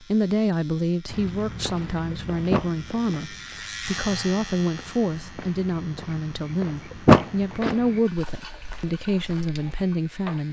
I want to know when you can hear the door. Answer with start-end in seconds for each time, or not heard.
2.5-3.2, 7.0-7.8.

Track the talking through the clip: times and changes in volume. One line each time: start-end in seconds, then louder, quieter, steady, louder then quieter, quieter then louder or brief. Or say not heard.
0.0-10.4 steady.